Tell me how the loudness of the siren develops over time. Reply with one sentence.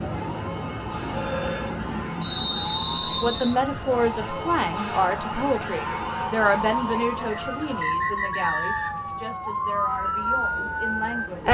The loudness of the siren goes up.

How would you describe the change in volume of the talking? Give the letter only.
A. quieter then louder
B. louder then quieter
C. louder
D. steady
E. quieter
E.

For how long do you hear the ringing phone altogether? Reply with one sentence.
The ringing phone can be heard for 2 seconds in total.